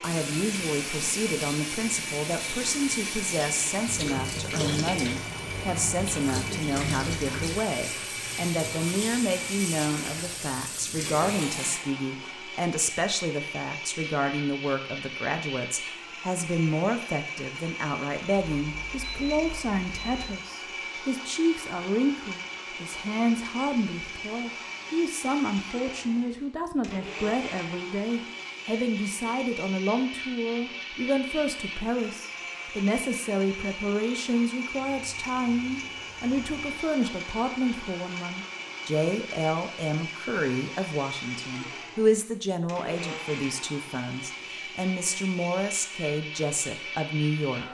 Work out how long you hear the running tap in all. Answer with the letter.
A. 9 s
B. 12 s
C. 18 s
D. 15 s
B.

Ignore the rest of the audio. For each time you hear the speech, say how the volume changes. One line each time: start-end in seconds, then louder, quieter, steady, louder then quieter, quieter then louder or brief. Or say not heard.
0.0-47.6 steady.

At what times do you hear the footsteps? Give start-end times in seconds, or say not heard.
not heard.